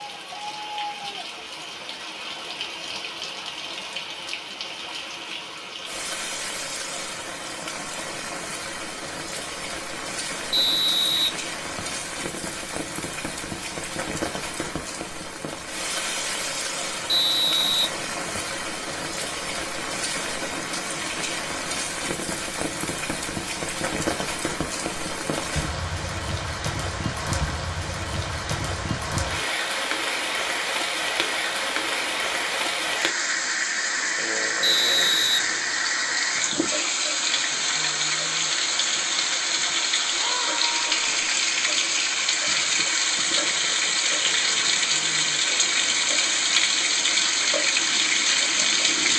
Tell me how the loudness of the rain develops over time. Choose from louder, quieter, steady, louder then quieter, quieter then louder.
louder.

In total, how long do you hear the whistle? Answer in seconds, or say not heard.
4 s.